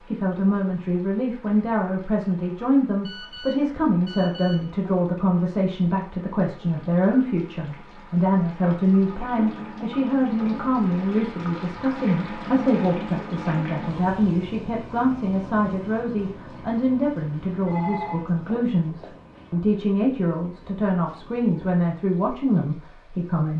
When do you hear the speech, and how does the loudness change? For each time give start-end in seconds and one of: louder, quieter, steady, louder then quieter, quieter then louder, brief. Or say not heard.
0.1-23.5 steady.